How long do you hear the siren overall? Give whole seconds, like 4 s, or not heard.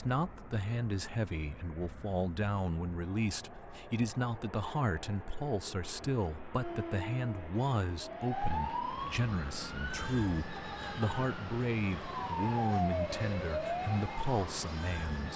9 s.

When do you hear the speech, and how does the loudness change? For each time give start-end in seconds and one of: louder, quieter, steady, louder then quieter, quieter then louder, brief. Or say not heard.
0.0-15.3 steady.